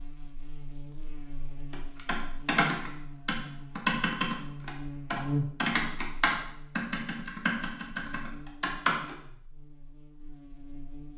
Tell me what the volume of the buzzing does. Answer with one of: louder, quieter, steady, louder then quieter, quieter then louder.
louder then quieter.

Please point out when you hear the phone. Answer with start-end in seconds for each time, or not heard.
not heard.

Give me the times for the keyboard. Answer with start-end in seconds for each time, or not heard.
1.7-9.2.